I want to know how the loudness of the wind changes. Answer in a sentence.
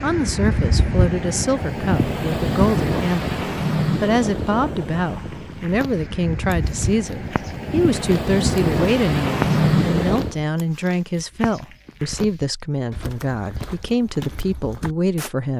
The loudness of the wind goes down, then up.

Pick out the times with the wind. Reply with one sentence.
You can hear the wind from 0.0 to 10.3 s.